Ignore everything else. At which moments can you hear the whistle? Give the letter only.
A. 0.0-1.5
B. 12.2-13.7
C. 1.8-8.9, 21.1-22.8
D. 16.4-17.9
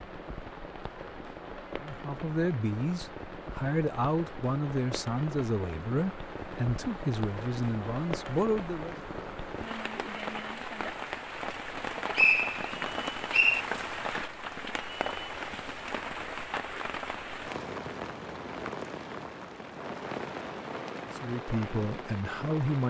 B.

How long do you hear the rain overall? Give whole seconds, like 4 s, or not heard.
23 s.